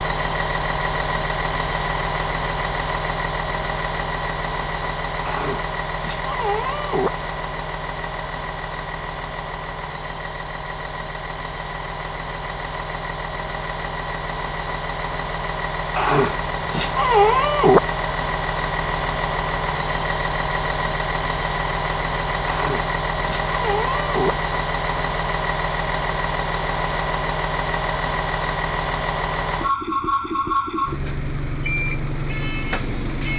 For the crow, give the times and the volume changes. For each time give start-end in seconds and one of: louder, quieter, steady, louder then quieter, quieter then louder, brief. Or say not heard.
not heard.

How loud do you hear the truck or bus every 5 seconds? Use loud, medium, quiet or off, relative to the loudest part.
loud, medium, medium, loud, loud, loud, loud.